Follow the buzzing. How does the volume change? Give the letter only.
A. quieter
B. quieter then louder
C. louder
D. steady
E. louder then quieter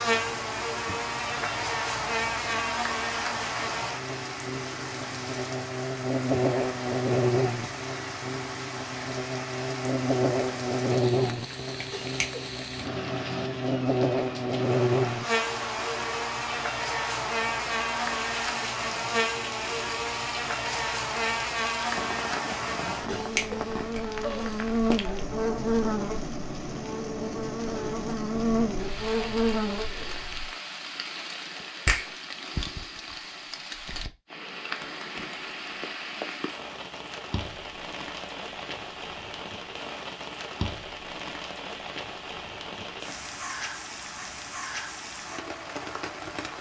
D.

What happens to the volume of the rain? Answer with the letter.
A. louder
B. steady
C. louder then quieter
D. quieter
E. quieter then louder
B.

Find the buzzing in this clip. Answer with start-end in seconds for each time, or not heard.
0.0-30.6.